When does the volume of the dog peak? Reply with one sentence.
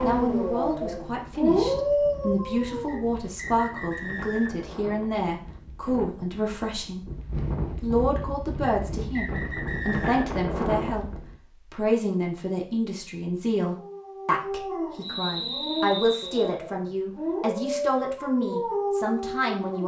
The loudest moment of the dog is at 2 seconds.